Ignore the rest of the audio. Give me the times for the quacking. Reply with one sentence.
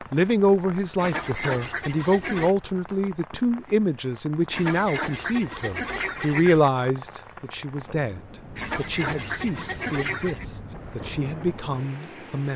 The quacking can be heard from 0.9 to 2.5 s, from 4.5 to 6.7 s and from 8.6 to 10.4 s.